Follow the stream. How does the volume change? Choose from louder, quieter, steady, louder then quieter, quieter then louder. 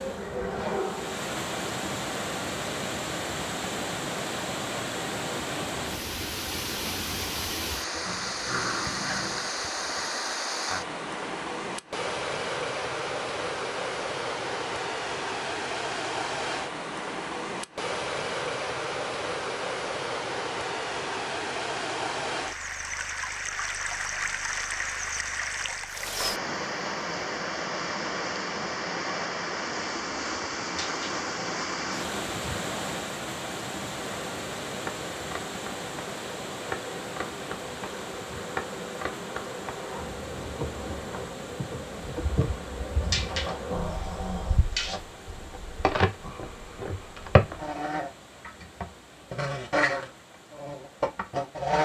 quieter.